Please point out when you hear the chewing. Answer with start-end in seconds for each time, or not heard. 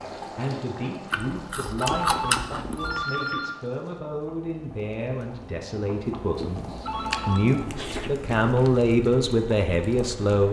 1.1-3.0, 6.4-8.9.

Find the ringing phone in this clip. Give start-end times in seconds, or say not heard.
1.8-3.5, 6.8-7.7.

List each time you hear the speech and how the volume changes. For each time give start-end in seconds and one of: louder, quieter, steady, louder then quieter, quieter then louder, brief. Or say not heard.
0.3-10.4 louder.